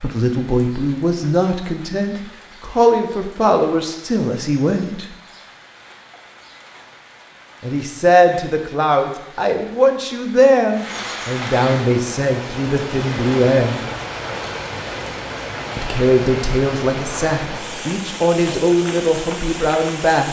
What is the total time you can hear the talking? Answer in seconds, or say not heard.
16 s.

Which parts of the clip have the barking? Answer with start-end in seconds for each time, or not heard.
not heard.